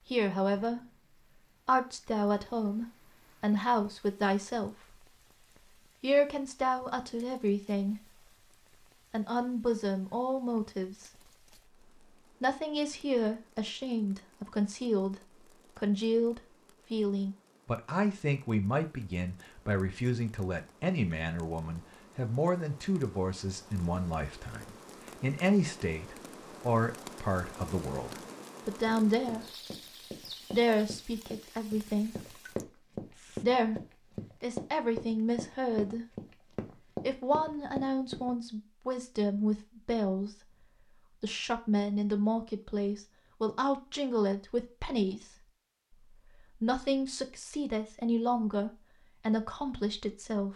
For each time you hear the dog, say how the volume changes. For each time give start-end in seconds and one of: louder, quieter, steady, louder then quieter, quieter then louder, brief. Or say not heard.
not heard.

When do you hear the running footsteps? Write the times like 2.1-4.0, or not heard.
28.9-38.4.